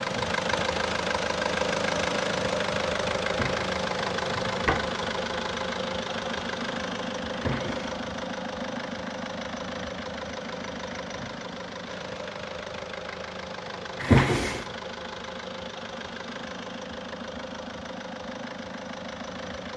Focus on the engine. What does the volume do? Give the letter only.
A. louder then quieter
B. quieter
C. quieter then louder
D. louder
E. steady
B.